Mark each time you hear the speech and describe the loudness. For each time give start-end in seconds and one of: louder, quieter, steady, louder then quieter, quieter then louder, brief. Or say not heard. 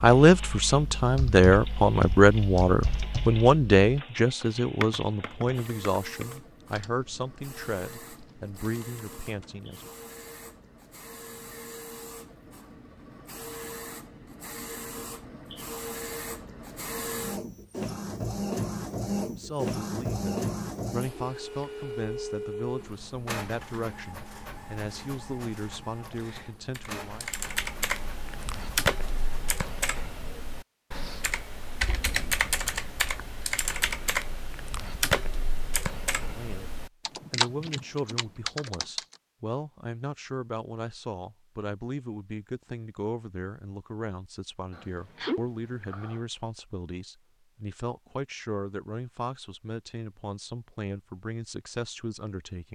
0.0-9.9 quieter
19.2-27.2 steady
36.1-52.7 steady.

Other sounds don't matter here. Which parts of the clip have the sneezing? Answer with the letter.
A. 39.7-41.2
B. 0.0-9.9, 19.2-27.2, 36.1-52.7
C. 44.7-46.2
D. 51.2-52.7
C.